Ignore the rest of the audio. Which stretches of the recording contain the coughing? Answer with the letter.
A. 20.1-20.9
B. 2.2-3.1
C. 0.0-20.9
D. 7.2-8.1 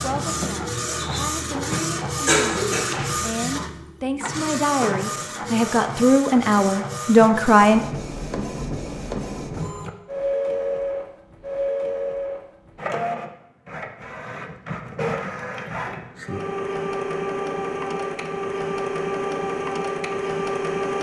B.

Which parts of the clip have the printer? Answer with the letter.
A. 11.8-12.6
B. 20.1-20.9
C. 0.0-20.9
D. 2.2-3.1
C.